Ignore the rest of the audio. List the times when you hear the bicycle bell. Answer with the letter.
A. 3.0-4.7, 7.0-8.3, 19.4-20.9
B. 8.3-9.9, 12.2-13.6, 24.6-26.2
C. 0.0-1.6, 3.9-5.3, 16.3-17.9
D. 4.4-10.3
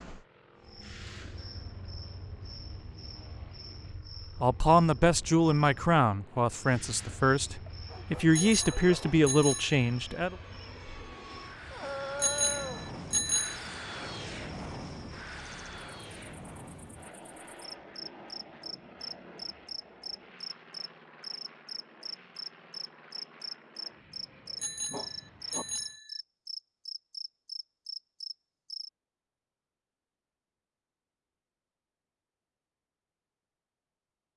B.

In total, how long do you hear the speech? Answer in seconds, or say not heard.
6 s.